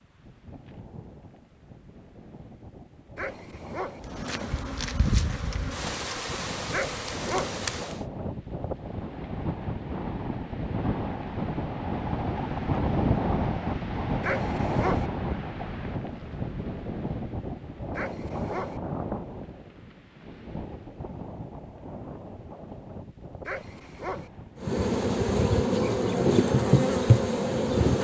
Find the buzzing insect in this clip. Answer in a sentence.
You can hear the buzzing insect from 4.0 to 8.1 s and from 24.6 to 27.9 s.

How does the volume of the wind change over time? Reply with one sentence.
The loudness of the wind goes up, then down.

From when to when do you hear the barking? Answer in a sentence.
The barking can be heard from 3.1 to 4.0 s, from 6.7 to 7.5 s, from 14.2 to 15.1 s, from 17.9 to 18.8 s and from 23.4 to 24.3 s.